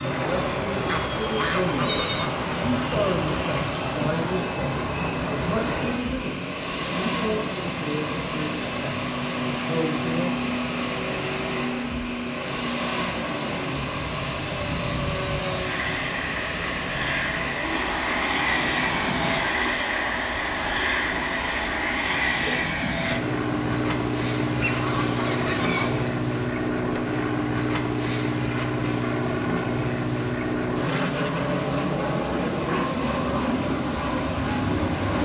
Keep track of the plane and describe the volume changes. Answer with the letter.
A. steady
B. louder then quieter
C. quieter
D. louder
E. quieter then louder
D.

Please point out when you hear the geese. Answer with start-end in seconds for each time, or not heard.
0.8-2.5, 24.6-26.1.